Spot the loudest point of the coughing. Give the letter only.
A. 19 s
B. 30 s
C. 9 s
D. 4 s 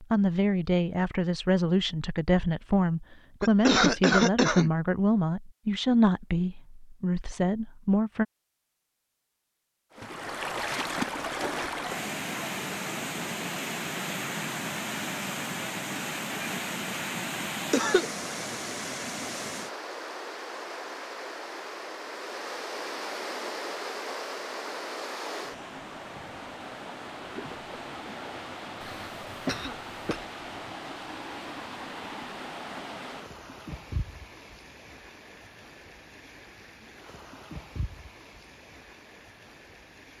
D.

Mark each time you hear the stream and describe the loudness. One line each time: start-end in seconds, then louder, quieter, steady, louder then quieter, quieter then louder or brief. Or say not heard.
9.9-40.1 quieter.